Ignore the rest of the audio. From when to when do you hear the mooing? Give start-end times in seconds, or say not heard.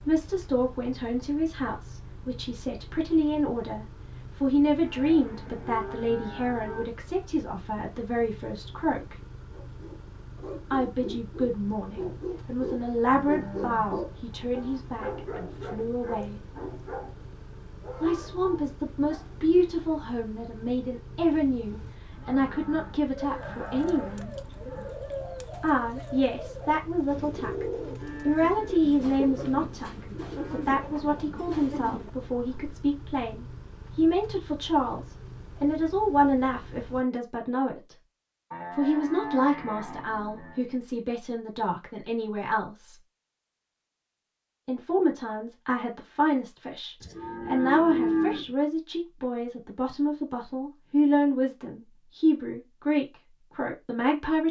4.8-6.8, 13.1-14.8, 22.1-24.9, 27.9-30.7, 38.5-40.6, 47.0-48.5.